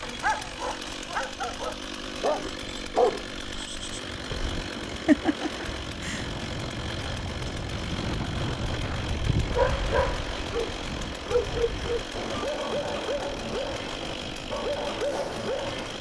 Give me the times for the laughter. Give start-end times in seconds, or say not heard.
4.8-6.5.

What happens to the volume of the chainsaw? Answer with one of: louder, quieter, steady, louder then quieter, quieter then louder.
steady.